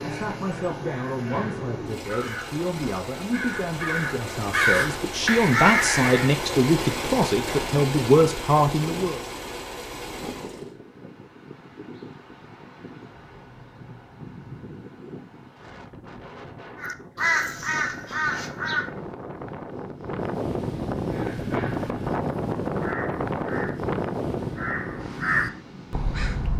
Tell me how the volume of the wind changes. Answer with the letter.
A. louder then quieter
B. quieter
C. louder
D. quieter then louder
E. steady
C.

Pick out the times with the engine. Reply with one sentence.
The engine can be heard from 0.0 to 10.8 s.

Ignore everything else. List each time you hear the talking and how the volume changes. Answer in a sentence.
The talking can be heard from 0.0 to 9.2 s, getting louder.